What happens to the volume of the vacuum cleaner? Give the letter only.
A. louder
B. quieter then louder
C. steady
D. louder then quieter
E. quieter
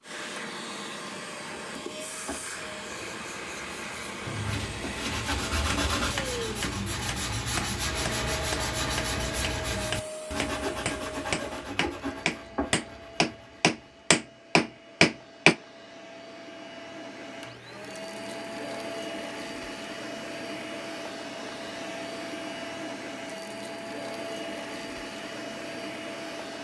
B.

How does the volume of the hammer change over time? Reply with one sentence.
The loudness of the hammer goes up.